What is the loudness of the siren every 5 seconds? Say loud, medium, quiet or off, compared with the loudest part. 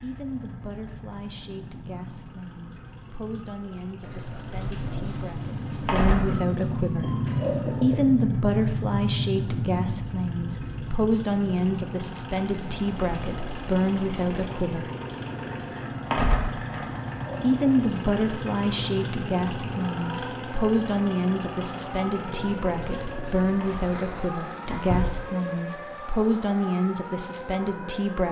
quiet, loud, medium, medium, medium, medium.